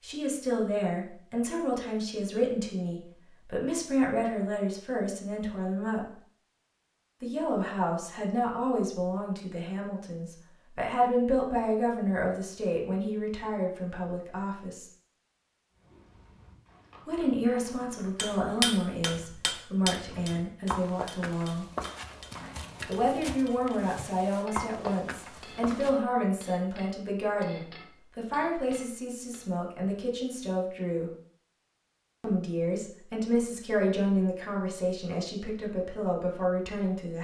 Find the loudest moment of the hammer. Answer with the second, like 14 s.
19 s.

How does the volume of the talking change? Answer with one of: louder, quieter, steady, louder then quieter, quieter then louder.
steady.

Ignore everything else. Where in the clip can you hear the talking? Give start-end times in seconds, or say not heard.
0.0-6.0, 7.2-14.9, 17.1-21.6, 22.9-31.1, 32.2-37.1.